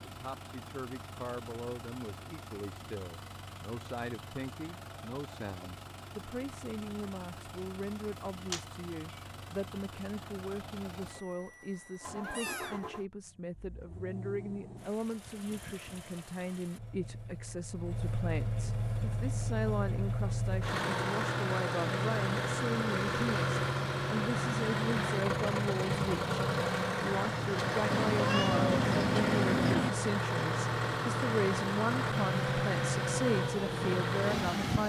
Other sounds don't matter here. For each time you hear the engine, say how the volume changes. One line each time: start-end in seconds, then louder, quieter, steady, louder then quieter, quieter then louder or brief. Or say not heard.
0.0-34.8 louder.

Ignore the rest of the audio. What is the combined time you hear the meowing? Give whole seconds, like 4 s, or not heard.
3 s.